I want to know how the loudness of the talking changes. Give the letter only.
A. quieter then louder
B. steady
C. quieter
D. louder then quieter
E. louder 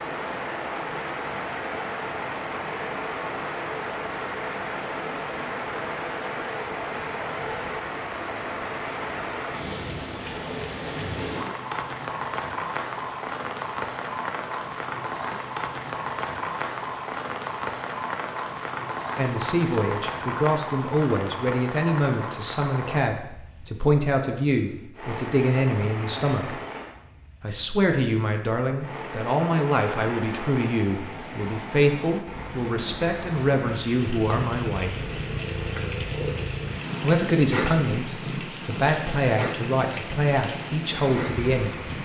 B.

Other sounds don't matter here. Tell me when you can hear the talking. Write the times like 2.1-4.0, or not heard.
19.1-26.6, 27.4-35.0, 37.0-41.9.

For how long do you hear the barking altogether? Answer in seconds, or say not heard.
not heard.